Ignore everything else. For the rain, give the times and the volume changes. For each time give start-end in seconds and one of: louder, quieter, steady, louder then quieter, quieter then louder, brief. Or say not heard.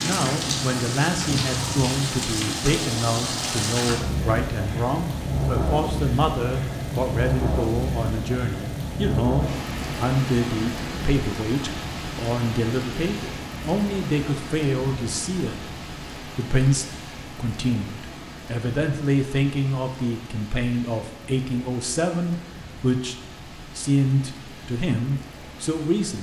0.0-26.1 quieter.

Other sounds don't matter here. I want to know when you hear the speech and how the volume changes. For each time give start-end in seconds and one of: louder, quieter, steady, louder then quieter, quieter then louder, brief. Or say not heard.
0.0-26.1 steady.